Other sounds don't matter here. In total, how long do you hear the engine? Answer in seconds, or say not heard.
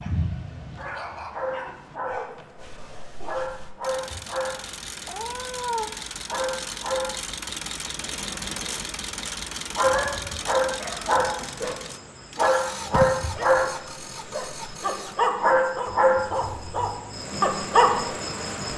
15 s.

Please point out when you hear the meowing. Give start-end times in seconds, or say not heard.
5.0-5.9.